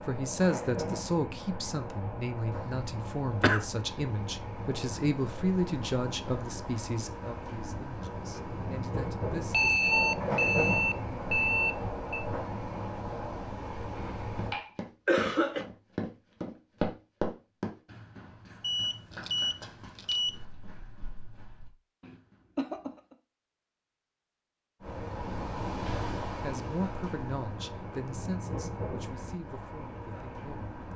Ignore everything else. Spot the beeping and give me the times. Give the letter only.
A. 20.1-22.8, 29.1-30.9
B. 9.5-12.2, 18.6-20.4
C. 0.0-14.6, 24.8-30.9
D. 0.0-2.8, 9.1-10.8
B.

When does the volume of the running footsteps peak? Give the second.
17 s.